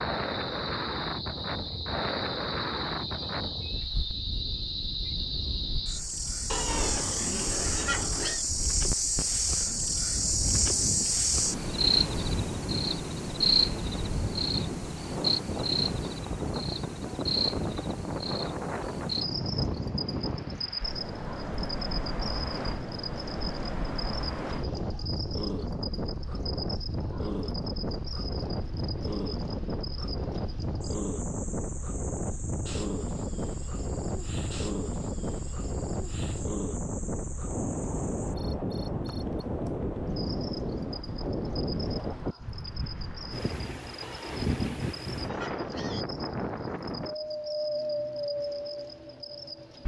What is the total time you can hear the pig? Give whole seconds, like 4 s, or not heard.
4 s.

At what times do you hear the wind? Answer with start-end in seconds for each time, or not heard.
0.0-49.8.